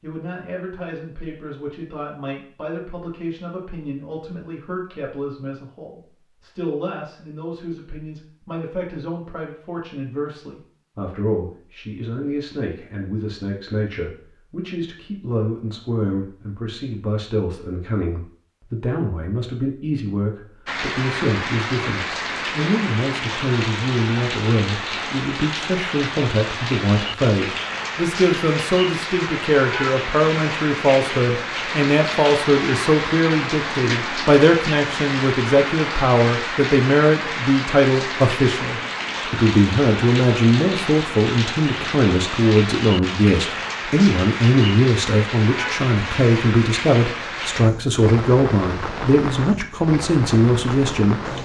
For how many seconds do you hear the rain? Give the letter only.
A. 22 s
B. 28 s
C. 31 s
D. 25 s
C.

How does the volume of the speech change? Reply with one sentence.
The volume of the speech goes up.